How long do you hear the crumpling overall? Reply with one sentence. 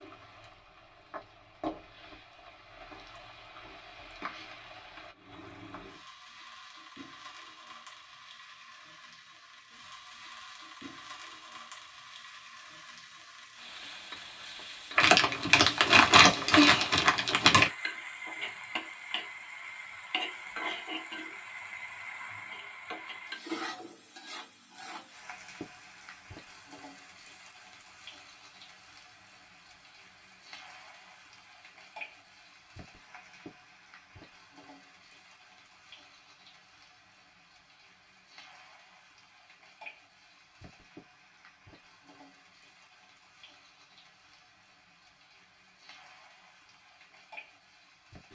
The crumpling can be heard for 3 seconds in total.